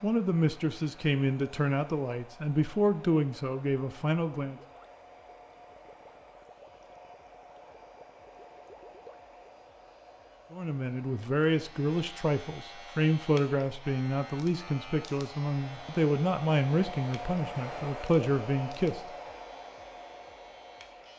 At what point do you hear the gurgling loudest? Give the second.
9 s.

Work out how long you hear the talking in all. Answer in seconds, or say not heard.
13 s.